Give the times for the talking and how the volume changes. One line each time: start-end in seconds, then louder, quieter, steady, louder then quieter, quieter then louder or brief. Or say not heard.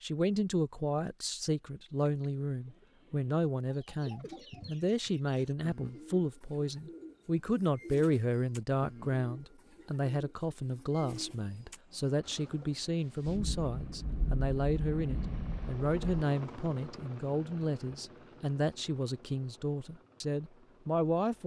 0.0-21.4 steady.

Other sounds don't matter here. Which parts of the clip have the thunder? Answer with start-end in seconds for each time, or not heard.
13.2-16.2.